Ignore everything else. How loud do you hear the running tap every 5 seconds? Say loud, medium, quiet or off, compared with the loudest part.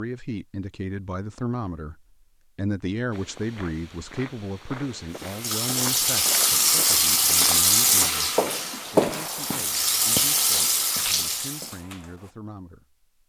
off, loud, loud.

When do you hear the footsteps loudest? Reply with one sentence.
The volume of the footsteps peaks at 9 seconds.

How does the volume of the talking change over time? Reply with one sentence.
The volume of the talking goes down.